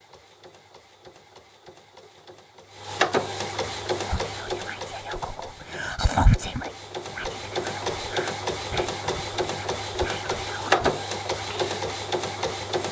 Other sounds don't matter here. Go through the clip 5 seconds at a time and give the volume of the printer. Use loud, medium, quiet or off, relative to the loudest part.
medium, medium, loud.